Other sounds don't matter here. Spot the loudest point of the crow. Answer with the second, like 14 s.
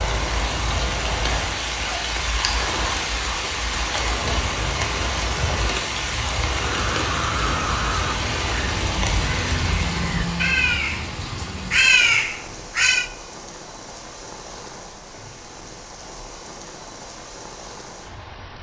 12 s.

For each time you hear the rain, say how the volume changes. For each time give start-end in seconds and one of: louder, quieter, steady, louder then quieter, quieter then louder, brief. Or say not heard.
0.0-18.5 quieter.